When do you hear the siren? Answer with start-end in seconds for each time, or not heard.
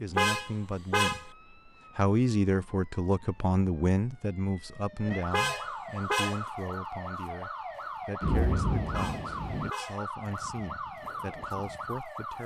0.2-12.4.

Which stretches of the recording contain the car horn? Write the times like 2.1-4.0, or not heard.
0.1-1.2, 5.3-6.5, 8.9-10.1.